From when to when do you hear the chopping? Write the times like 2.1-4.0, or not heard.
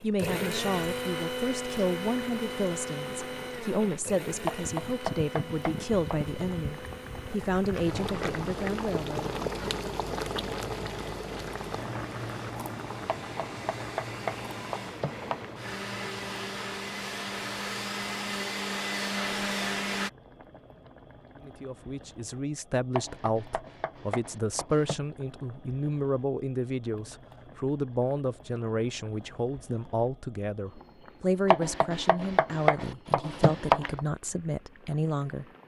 4.5-6.5, 13.1-15.5, 22.9-24.9, 31.5-34.0.